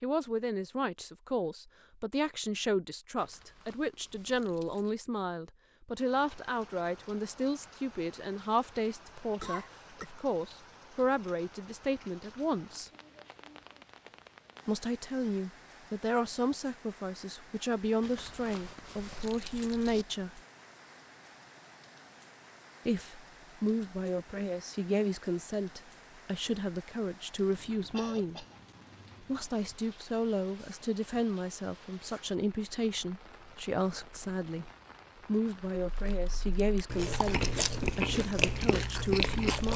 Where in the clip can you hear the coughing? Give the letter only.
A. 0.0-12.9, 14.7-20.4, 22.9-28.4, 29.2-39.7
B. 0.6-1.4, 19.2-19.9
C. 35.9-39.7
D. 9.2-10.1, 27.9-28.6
D.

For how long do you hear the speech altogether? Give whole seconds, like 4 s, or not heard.
35 s.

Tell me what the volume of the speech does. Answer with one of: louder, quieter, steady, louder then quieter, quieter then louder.
steady.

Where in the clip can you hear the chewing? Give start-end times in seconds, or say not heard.
35.9-39.7.